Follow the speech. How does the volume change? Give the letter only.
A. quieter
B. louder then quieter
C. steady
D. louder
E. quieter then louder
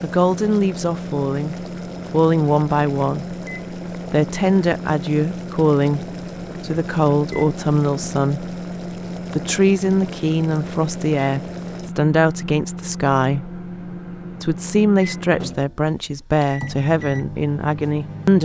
C.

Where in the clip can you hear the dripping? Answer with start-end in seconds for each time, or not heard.
not heard.